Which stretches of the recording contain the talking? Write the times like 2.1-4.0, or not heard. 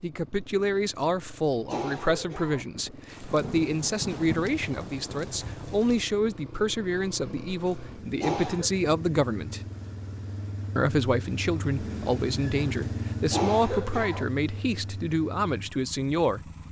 0.0-9.6, 10.8-16.5.